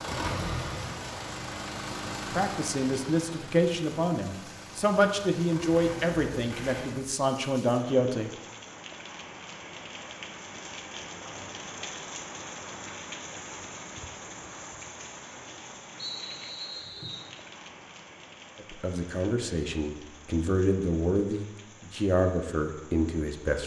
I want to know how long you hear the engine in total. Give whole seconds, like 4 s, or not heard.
7 s.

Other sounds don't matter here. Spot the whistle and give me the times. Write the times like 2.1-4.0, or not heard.
15.9-17.3.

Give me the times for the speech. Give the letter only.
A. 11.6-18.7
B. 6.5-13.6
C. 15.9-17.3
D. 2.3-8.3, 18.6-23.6
D.